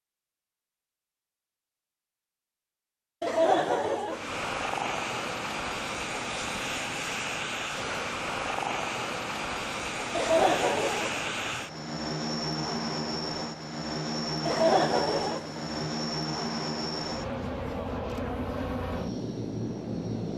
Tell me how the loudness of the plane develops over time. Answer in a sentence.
The volume of the plane stays about the same.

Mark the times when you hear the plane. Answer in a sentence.
You can hear the plane from 4.0 to 20.3 s.